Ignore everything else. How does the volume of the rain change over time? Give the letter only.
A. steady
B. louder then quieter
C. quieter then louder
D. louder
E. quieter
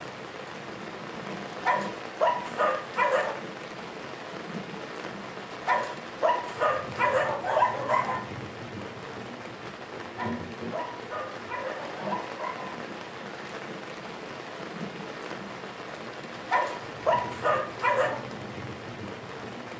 A.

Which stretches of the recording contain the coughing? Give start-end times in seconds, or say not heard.
not heard.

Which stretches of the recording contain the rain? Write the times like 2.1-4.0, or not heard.
0.0-19.7.